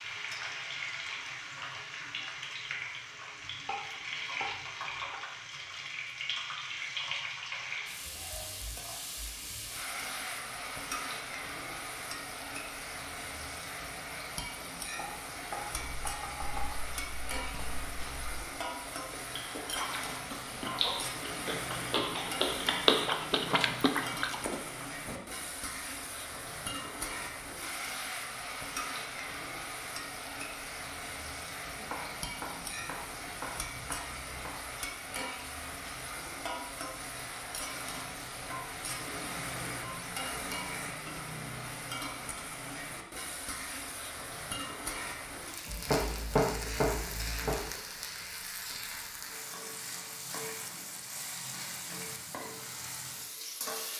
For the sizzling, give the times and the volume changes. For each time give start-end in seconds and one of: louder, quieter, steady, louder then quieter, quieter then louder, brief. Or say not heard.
0.0-53.9 steady.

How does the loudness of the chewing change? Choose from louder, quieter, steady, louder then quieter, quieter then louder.
louder.